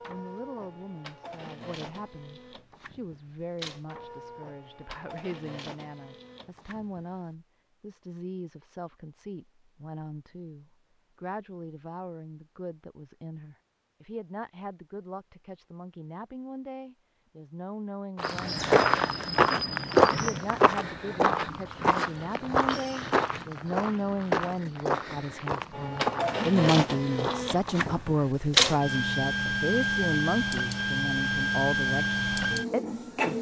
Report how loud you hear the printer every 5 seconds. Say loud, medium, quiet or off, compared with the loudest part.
quiet, quiet, off, off, off, loud, loud.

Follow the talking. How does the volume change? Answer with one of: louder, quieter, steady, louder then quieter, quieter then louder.
louder.